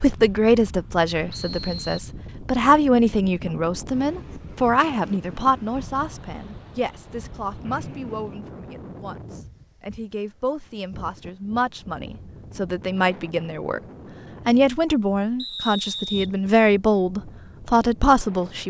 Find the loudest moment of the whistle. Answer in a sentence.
The loudest moment of the whistle is at 16 seconds.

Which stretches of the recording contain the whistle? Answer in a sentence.
The whistle can be heard from 1.3 to 2.1 s, from 7.7 to 8.4 s and from 15.3 to 16.3 s.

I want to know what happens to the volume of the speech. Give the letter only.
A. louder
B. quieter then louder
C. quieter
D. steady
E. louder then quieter
B.